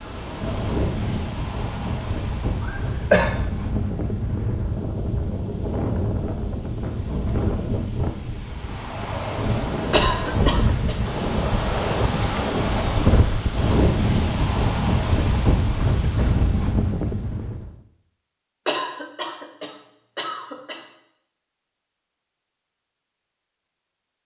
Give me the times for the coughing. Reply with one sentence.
The coughing can be heard from 2.6 to 3.4 s, from 9.9 to 10.9 s and from 18.6 to 20.9 s.